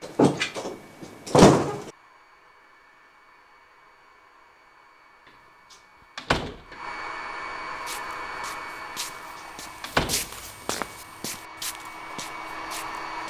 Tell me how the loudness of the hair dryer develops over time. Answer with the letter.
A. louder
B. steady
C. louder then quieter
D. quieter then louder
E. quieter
A.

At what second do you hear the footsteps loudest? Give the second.
10 s.